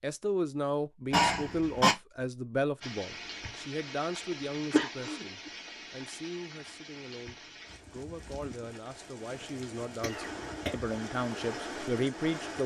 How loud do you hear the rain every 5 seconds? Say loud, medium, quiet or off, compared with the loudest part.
loud, medium, loud.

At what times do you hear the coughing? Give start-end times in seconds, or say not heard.
1.1-1.9, 4.7-5.2, 10.0-10.7.